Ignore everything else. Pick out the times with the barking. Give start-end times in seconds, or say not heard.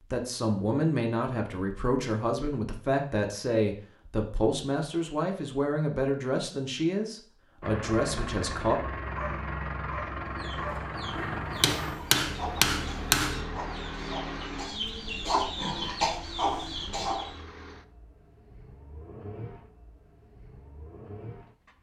9.2-10.8.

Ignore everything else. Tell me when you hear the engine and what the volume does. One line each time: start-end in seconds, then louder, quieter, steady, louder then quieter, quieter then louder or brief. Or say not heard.
7.6-21.7 quieter.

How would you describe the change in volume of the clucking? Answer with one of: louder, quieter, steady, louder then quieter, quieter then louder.
louder.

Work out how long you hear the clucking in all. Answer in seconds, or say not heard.
7 s.